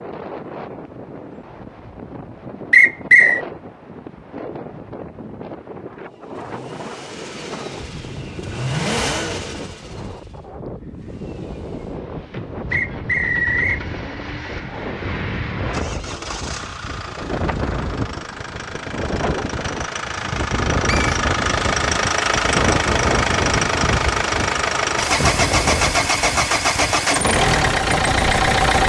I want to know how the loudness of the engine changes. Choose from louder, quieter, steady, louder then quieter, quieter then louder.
quieter then louder.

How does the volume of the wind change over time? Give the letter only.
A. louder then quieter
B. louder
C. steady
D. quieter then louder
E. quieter
B.